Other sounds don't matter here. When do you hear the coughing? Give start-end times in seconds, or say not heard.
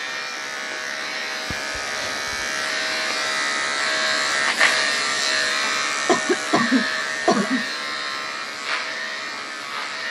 1.4-2.5, 6.0-7.7.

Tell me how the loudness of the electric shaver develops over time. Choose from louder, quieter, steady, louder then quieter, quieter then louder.
louder then quieter.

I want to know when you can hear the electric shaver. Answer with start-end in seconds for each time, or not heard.
0.0-10.0.